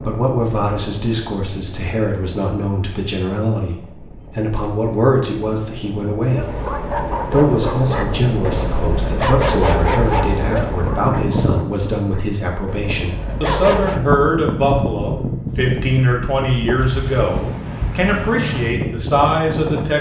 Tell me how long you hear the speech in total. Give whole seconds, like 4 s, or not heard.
20 s.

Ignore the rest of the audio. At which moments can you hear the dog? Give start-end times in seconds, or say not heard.
6.3-14.0.